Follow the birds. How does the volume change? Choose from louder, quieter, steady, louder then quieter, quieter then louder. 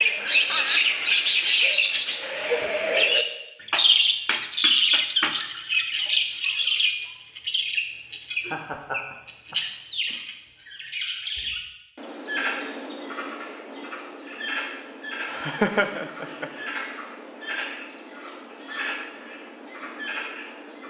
quieter.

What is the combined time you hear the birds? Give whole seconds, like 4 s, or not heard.
21 s.